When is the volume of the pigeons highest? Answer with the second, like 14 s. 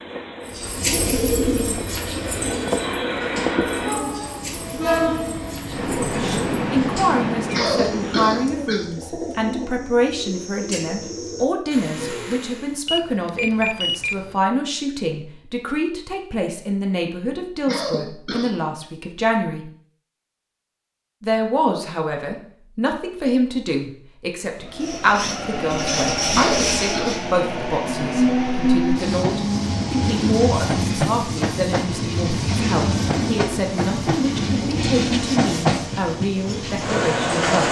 1 s.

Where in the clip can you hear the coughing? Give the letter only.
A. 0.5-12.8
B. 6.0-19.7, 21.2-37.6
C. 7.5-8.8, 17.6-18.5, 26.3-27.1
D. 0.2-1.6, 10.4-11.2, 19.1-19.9
C.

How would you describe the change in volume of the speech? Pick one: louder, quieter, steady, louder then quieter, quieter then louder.
steady.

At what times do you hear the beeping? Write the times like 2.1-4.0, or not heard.
12.8-14.4.